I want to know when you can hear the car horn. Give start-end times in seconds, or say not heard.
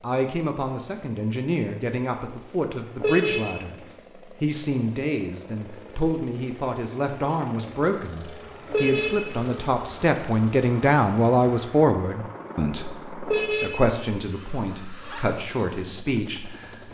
3.0-3.6, 8.7-9.3, 13.2-13.8.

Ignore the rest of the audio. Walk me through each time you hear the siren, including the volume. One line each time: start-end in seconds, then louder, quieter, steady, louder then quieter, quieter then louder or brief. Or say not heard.
not heard.